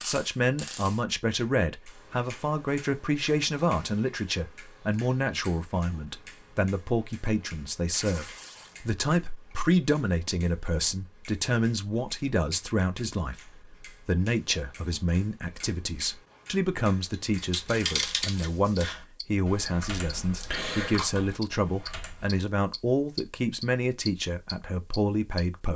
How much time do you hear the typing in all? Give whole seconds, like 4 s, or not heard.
5 s.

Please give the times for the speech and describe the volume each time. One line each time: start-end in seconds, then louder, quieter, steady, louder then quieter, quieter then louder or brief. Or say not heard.
0.0-25.7 steady.